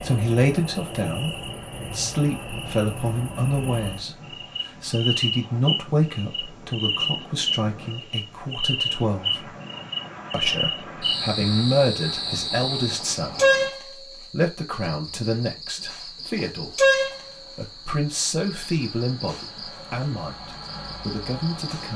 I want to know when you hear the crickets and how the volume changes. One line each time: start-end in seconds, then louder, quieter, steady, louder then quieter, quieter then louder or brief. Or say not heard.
0.0-21.9 louder then quieter.